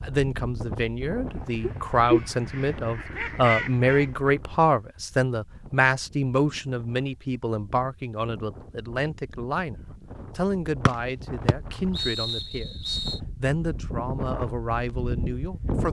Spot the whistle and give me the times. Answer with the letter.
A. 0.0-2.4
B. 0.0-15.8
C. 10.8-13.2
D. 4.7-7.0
C.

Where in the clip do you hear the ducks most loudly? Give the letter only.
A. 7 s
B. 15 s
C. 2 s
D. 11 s
C.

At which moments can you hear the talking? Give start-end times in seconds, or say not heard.
0.0-15.8.